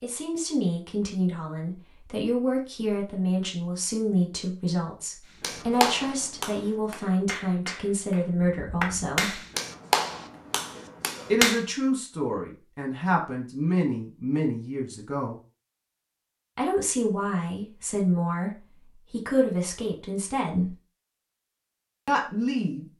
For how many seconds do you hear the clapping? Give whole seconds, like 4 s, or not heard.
6 s.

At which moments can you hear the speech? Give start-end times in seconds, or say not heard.
0.0-9.4, 11.3-15.3, 16.6-20.8, 22.1-22.9.